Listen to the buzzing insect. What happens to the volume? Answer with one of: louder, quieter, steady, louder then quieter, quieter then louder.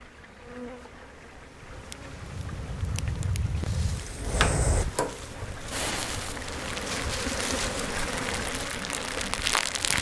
louder.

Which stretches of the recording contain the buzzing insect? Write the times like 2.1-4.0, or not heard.
0.0-9.9.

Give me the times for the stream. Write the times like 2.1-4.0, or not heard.
0.0-9.9.